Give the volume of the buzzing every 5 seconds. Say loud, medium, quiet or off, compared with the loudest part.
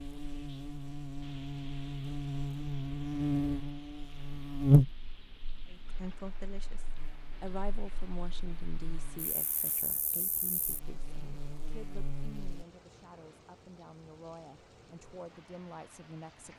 loud, quiet, quiet, off.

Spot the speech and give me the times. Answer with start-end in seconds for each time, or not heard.
5.7-16.5.